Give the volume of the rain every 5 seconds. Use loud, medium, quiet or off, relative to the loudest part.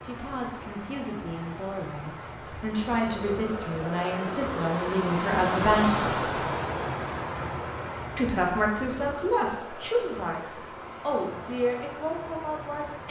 medium, loud, medium.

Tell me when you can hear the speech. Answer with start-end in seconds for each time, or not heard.
0.0-6.2, 8.2-13.0.